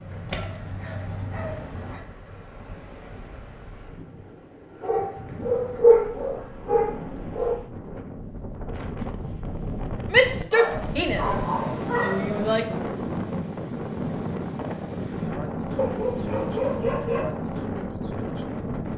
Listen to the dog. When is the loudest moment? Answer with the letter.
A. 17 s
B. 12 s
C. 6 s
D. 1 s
C.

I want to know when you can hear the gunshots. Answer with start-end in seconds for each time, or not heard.
not heard.